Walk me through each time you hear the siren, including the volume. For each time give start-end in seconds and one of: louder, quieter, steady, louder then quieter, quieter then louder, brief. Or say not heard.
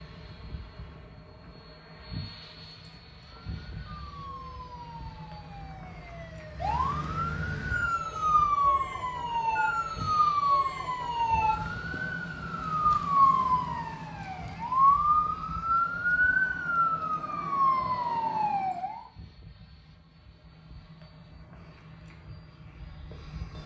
3.4-19.1 louder.